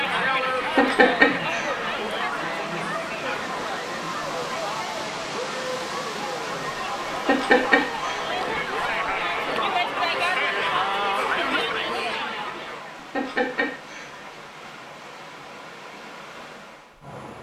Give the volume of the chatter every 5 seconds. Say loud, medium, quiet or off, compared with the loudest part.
loud, loud, loud, off.